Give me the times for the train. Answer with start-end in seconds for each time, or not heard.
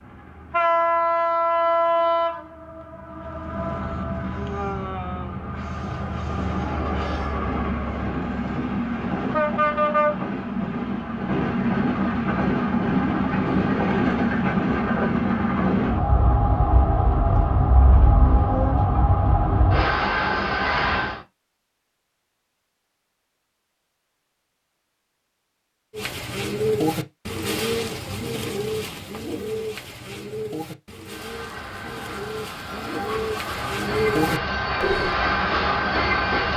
0.0-21.2, 31.1-36.5.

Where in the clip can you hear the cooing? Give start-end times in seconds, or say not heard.
25.9-35.1.